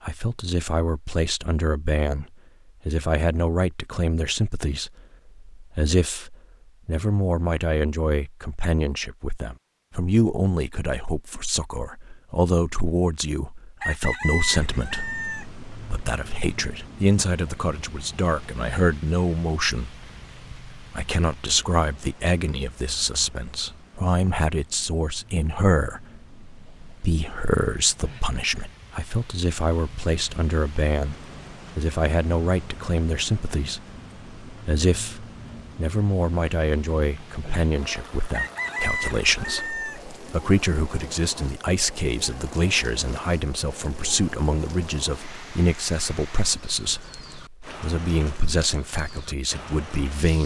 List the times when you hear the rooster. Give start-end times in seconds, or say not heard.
13.8-15.4, 38.3-40.0.